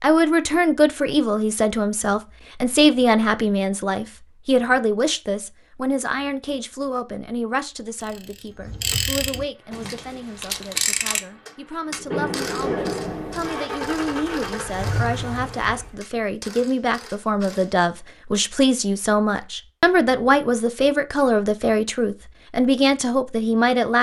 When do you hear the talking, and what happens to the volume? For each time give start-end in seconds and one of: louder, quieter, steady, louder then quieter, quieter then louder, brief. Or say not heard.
0.0-23.9 quieter then louder.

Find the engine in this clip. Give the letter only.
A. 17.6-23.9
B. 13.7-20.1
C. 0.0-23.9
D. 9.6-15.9
D.